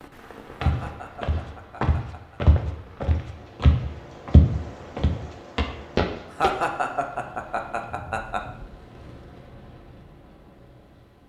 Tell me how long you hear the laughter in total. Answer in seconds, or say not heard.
4 s.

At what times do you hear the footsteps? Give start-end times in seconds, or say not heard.
0.6-6.5.